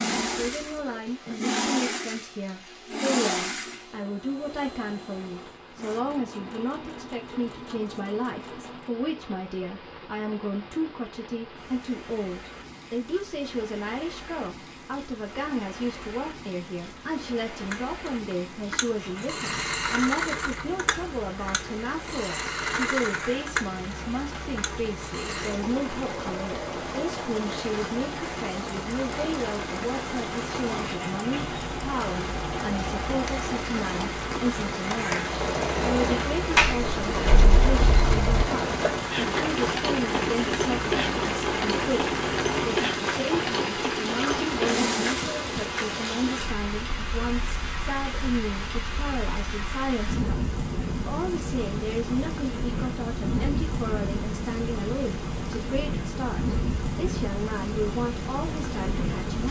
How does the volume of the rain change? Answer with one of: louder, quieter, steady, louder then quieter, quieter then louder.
louder.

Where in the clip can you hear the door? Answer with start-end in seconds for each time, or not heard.
36.5-38.5.